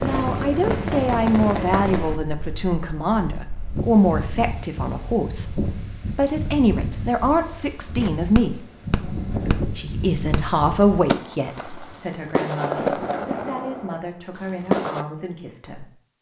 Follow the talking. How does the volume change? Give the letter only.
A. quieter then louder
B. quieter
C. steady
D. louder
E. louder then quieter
B.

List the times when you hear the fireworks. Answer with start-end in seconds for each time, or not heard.
0.0-2.1, 8.0-15.1.